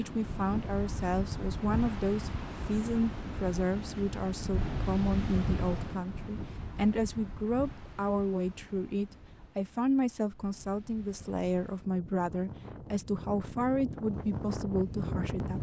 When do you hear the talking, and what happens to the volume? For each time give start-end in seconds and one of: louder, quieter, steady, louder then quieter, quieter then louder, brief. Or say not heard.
0.0-15.5 steady.